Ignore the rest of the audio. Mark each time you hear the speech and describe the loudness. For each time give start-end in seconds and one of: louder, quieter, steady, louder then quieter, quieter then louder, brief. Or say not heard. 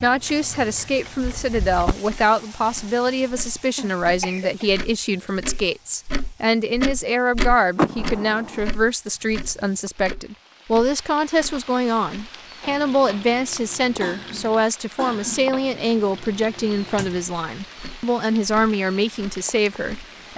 0.0-20.3 steady.